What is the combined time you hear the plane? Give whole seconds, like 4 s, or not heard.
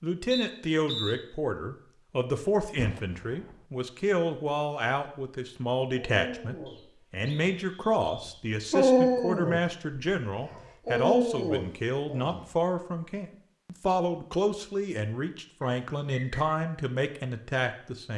not heard.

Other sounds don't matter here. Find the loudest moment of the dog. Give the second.
9 s.